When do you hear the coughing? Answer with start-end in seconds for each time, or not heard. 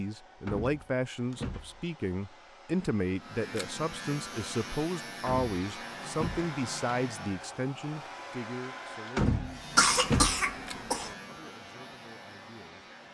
9.8-11.1.